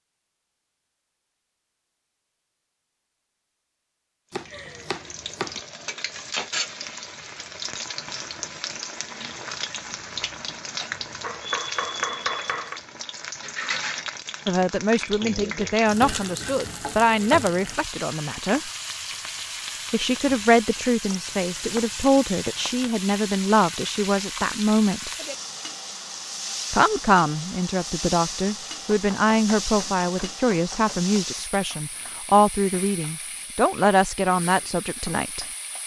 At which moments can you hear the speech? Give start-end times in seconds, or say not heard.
14.4-18.7, 19.9-25.1, 26.7-35.5.